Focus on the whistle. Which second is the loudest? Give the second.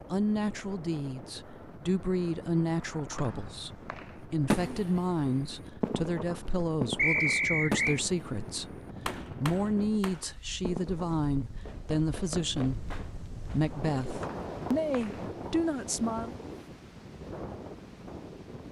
7 s.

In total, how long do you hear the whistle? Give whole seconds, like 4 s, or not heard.
3 s.